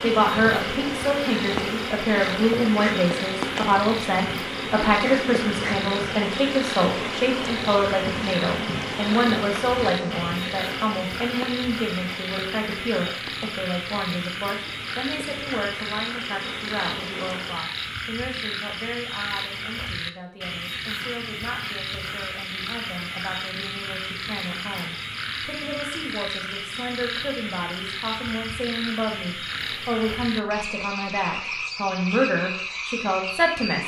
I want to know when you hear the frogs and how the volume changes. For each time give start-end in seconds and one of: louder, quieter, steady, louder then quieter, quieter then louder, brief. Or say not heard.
0.0-33.8 steady.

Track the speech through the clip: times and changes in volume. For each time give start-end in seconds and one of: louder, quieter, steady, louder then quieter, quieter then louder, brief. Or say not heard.
0.0-33.8 quieter then louder.